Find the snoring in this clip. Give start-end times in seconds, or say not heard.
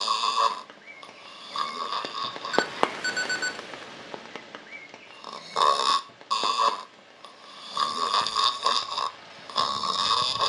0.0-2.9, 5.2-10.4.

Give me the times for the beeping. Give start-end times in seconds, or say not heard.
2.5-3.6.